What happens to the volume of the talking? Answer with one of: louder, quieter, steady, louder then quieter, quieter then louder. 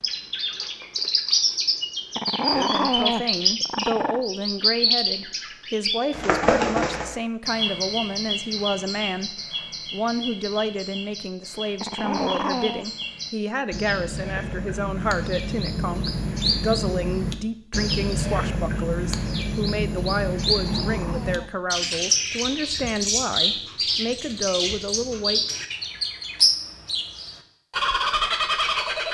steady.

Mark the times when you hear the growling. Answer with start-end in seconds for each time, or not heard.
2.1-4.2, 11.8-12.8, 20.6-21.5.